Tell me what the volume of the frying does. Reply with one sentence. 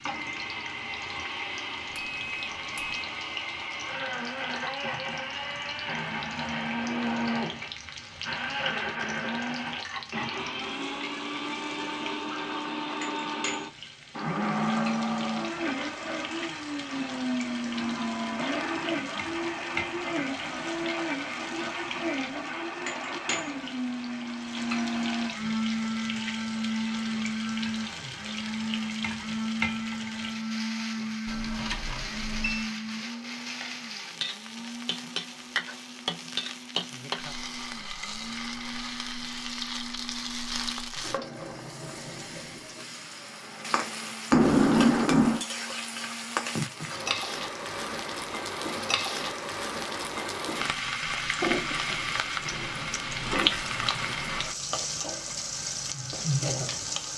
The volume of the frying goes up.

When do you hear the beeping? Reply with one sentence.
You can hear the beeping from 1.9 to 3.0 s, from 31.2 to 32.7 s and from 44.3 to 45.5 s.